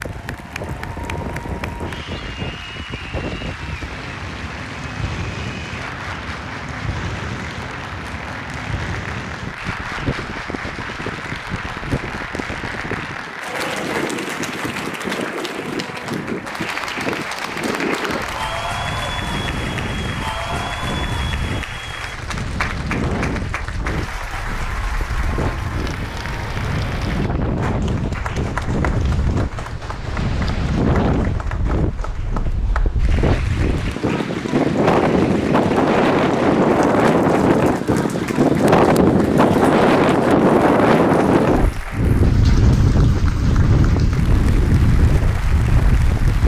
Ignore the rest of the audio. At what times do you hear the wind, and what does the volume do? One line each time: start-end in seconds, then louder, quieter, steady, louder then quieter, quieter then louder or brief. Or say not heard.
0.0-46.4 louder.